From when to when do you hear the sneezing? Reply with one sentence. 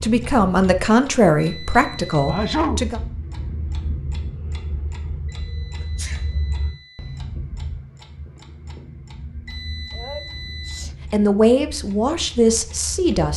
The sneezing can be heard from 2.2 to 2.9 s, from 5.8 to 6.2 s and from 9.9 to 10.9 s.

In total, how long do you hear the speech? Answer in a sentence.
The speech can be heard for 5 seconds in total.